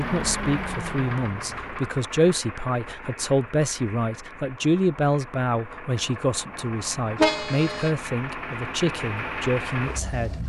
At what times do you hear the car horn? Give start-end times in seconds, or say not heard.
7.2-7.9.